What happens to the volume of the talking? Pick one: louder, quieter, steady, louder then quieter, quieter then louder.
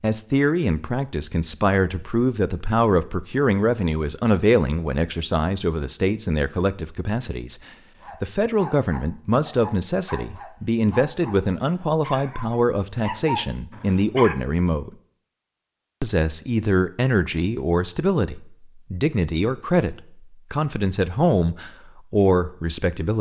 steady.